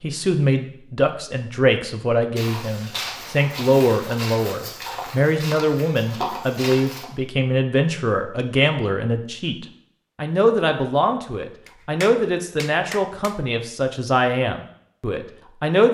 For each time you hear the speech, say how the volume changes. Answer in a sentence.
You can hear the speech from 0.0 to 15.9 s, at a steady volume.